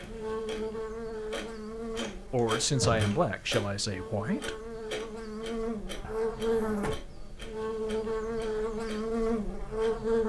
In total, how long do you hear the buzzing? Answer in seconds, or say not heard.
10 s.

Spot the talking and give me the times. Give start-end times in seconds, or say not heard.
2.3-4.7.